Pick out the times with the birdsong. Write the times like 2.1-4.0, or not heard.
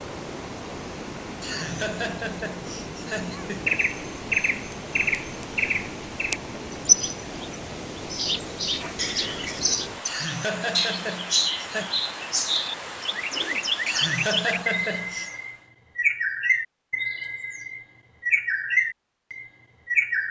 3.6-20.2.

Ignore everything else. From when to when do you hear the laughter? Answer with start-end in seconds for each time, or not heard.
1.4-3.8, 10.1-11.9, 13.8-15.3.